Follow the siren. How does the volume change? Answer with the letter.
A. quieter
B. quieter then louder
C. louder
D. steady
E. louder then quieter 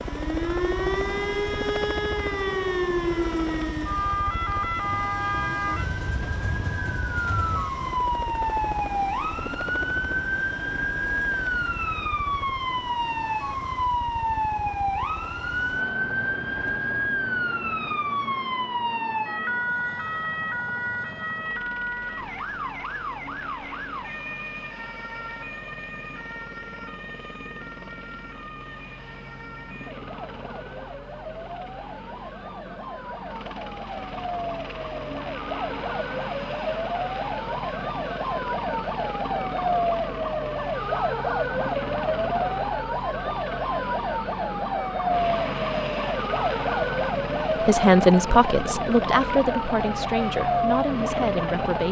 B.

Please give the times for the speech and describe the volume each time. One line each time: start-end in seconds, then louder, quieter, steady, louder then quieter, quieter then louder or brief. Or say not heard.
47.6-51.8 quieter.